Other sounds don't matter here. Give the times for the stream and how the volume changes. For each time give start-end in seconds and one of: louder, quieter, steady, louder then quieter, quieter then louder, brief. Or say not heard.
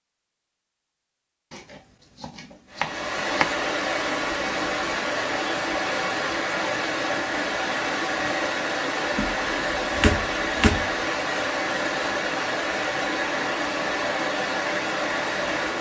2.7-15.7 steady.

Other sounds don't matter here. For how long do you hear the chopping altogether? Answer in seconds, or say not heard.
4 s.